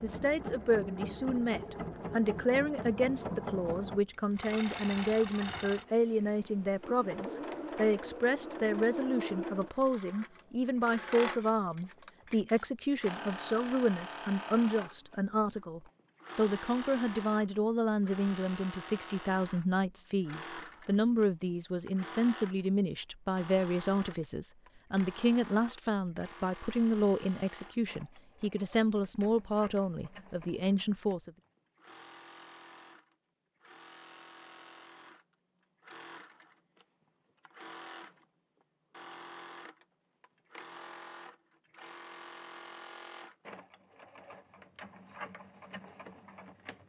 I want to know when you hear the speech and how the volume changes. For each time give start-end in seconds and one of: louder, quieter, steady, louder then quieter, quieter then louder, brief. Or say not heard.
0.0-31.3 steady.